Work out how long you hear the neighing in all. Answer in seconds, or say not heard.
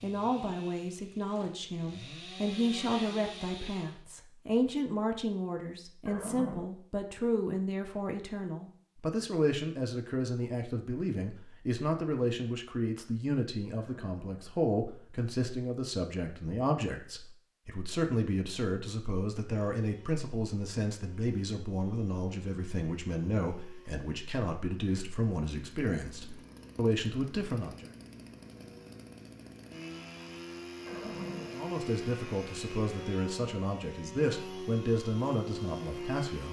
2 s.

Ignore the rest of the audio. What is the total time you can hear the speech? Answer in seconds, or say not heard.
33 s.